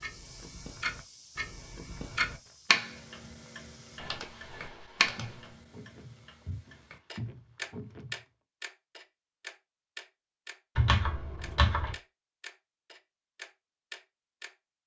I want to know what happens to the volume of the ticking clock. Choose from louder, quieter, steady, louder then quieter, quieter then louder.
louder then quieter.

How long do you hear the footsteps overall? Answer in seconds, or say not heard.
8 s.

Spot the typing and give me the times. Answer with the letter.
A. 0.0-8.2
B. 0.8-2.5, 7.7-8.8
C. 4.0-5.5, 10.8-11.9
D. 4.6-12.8
C.